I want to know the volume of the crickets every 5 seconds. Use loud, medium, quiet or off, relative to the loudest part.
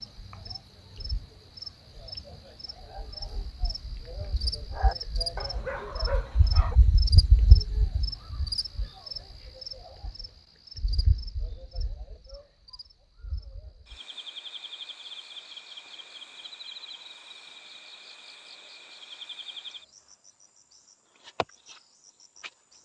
medium, loud, medium, medium, quiet.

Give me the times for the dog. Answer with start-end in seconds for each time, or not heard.
4.7-6.8.